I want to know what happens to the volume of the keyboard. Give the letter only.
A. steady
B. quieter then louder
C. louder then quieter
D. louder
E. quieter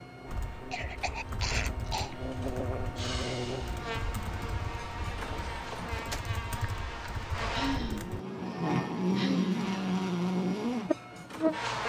A.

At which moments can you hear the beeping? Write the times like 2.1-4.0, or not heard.
not heard.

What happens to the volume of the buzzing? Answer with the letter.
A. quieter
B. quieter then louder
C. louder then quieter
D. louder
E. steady
D.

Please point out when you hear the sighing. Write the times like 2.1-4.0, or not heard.
3.0-3.8, 7.5-9.6.